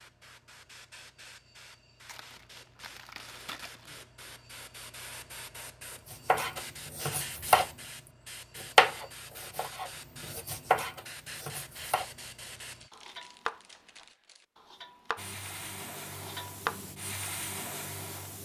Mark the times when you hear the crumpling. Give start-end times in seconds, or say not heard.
2.0-4.0, 12.6-14.4.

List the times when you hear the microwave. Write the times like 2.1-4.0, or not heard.
not heard.